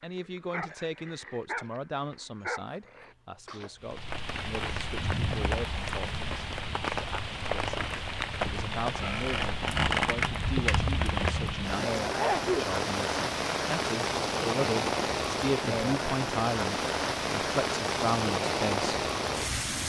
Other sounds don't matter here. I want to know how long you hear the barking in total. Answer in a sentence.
You can hear the barking for 3 seconds altogether.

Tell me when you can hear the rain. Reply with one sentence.
The rain can be heard from 3.8 to 19.8 s.